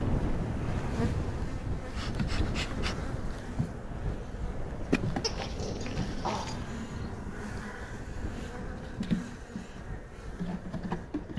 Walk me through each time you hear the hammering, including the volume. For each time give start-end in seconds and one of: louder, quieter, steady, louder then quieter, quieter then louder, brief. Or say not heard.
not heard.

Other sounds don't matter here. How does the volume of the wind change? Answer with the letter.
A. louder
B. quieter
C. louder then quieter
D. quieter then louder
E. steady
B.